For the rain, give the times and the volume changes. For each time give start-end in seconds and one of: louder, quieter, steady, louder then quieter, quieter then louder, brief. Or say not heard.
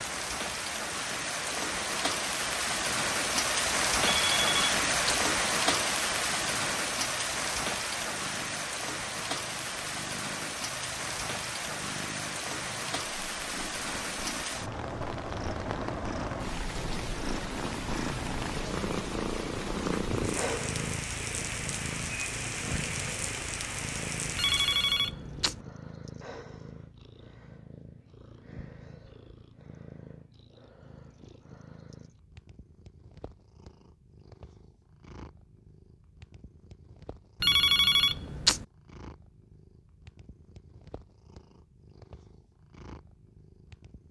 0.0-25.1 quieter.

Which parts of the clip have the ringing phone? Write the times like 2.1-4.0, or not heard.
4.0-5.2, 24.4-25.6, 37.4-38.6.